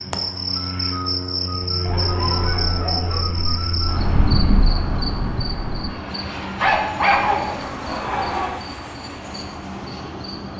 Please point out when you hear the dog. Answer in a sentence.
You can hear the dog from 1.9 to 3.2 s and from 6.6 to 8.6 s.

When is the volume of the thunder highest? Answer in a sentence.
The loudest moment of the thunder is at 4 seconds.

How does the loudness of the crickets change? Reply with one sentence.
The loudness of the crickets goes down.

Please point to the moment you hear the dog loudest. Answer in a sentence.
The loudest moment of the dog is at 7 seconds.